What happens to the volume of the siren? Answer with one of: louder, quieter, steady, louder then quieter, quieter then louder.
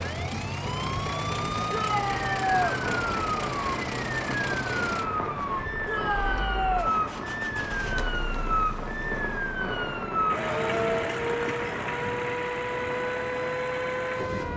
steady.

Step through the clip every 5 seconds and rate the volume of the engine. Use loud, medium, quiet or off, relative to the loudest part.
loud, medium, loud.